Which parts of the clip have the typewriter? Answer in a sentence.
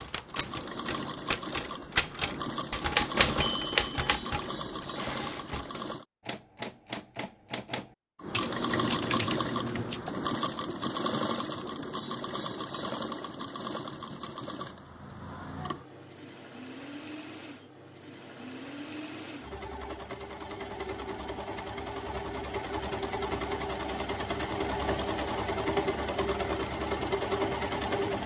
You can hear the typewriter from 0.0 to 10.1 s.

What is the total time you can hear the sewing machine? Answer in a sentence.
The sewing machine can be heard for 26 seconds in total.